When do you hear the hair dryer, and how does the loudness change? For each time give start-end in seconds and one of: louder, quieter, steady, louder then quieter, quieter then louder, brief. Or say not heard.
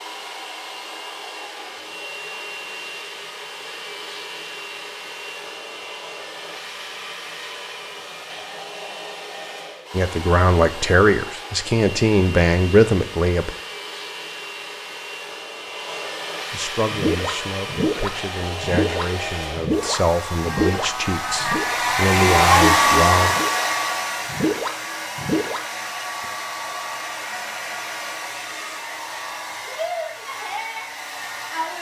0.0-31.7 louder then quieter.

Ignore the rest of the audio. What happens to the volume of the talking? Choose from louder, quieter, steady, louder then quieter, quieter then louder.
quieter then louder.